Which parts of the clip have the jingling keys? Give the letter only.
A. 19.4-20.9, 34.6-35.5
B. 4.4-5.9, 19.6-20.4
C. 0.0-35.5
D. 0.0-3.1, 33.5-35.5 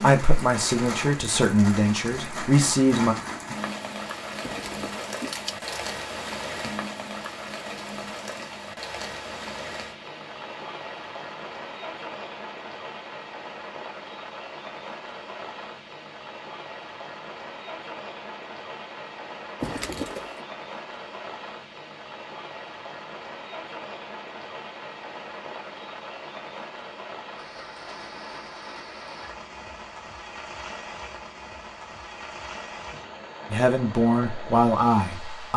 B.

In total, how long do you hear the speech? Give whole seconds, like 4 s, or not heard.
5 s.